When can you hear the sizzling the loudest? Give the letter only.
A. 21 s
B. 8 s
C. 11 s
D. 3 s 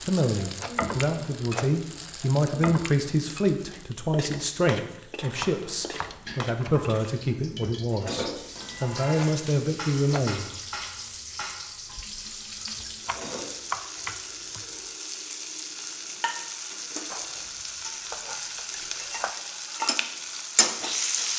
A.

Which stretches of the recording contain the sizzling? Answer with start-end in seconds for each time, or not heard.
0.0-21.3.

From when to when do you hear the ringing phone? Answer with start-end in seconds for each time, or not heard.
not heard.